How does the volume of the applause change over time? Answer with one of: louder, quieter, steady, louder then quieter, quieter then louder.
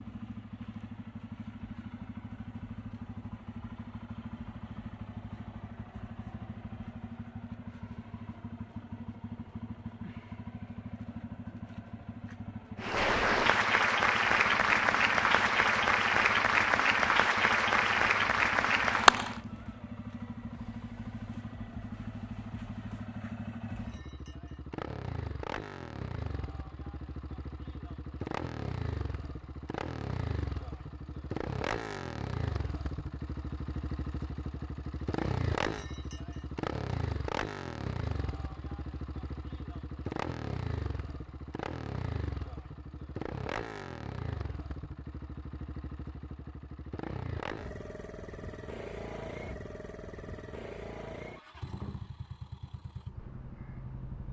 steady.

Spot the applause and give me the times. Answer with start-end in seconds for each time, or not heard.
12.8-19.4.